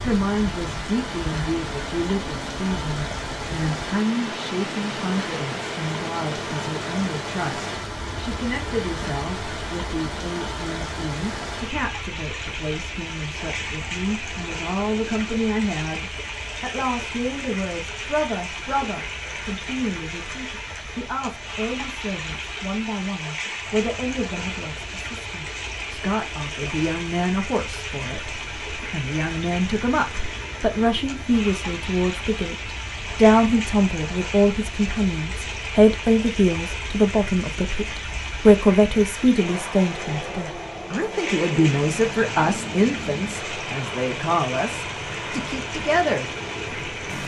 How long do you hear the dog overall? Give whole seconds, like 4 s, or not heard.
not heard.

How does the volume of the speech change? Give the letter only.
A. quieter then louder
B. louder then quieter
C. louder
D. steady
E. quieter
C.